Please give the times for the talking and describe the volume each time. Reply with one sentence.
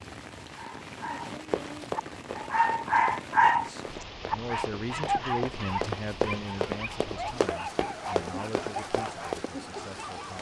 The talking can be heard from 3.5 to 10.3 s, getting quieter.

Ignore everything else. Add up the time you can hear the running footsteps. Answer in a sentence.
The running footsteps can be heard for 8 seconds in total.